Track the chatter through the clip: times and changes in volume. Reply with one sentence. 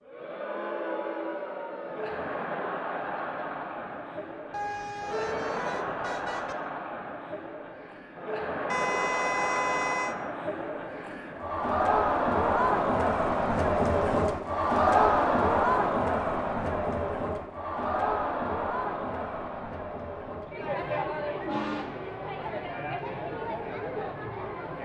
The chatter can be heard from 0.0 to 24.8 s, getting louder then quieter.